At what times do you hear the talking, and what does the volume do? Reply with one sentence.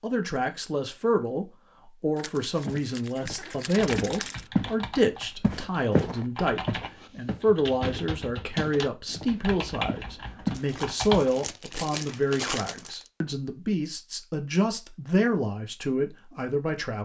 The talking can be heard from 0.0 to 17.0 s, at a steady volume.